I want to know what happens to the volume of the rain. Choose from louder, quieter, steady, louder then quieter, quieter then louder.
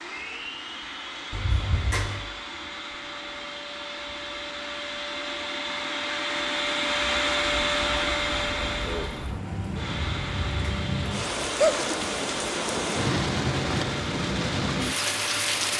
louder.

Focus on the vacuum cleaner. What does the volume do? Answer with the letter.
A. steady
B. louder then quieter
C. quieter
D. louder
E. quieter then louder
B.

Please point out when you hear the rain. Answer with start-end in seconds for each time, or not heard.
7.0-15.7.